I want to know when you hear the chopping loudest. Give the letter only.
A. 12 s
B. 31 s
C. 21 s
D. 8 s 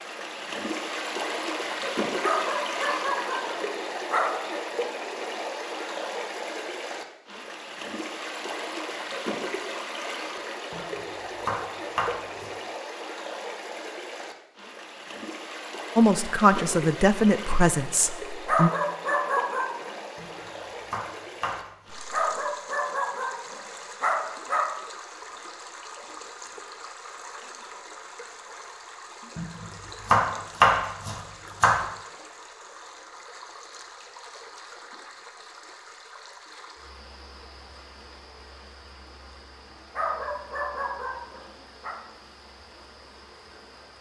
B.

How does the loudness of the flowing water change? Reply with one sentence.
The loudness of the flowing water goes down.